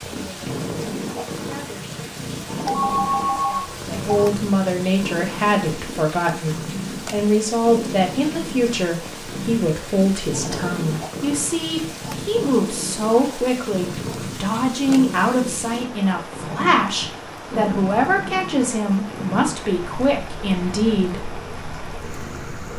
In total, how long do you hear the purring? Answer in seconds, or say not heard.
23 s.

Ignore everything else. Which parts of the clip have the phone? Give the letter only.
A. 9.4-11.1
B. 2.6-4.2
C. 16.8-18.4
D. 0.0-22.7
B.